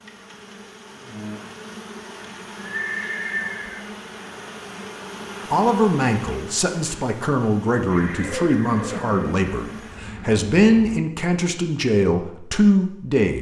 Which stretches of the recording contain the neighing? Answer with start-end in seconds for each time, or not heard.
2.7-3.9, 7.8-10.3.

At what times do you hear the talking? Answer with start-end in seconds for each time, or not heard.
5.5-13.3.